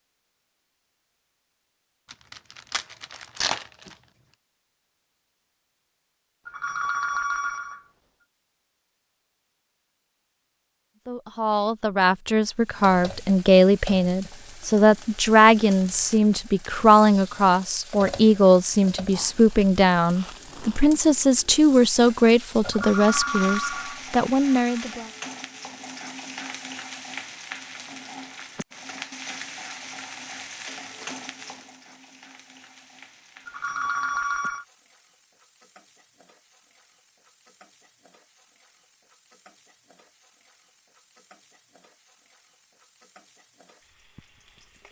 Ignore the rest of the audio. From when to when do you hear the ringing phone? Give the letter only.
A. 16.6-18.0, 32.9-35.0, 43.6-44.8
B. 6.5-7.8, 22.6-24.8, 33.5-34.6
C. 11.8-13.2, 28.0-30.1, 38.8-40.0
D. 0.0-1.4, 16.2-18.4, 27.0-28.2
B.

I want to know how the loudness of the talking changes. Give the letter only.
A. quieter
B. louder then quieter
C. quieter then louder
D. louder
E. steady
E.